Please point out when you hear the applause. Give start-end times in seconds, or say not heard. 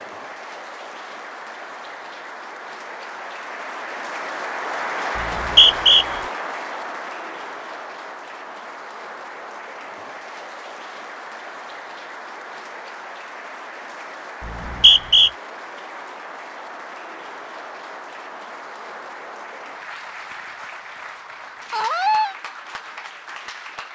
0.0-23.9.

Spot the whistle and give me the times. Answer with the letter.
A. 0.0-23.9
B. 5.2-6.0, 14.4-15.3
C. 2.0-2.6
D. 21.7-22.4
B.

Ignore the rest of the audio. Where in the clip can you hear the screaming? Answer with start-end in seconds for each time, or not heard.
21.7-22.4.